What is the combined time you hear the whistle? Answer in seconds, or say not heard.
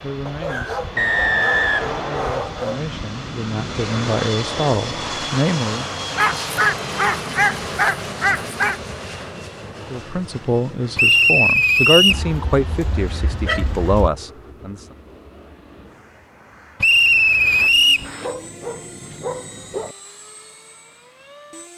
4 s.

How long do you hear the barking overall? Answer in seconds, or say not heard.
9 s.